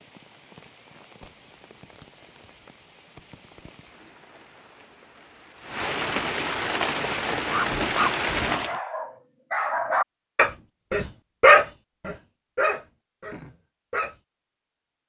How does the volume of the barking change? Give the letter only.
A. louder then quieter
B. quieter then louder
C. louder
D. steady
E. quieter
A.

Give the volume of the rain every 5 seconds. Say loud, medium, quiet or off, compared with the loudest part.
quiet, loud, off.